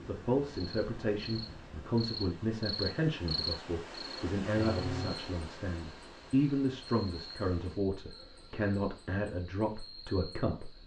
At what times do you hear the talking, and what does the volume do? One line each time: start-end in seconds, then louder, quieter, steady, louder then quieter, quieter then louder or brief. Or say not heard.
0.0-10.8 steady.